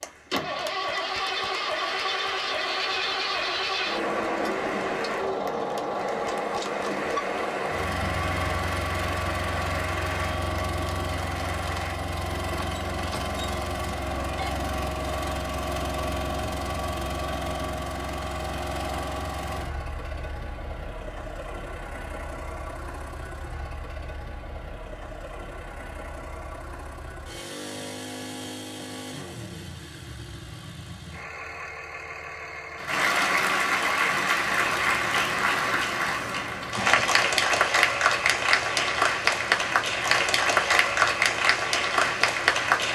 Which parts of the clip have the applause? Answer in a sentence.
You can hear the applause from 0.0 to 11.9 s and from 32.8 to 42.9 s.